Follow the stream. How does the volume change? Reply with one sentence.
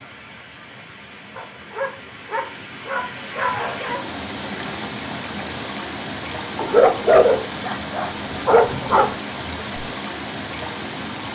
The volume of the stream goes up.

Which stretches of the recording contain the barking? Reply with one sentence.
The barking can be heard from 1.4 to 4.0 s and from 6.5 to 9.2 s.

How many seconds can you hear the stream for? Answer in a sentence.
The stream can be heard for 11 seconds in total.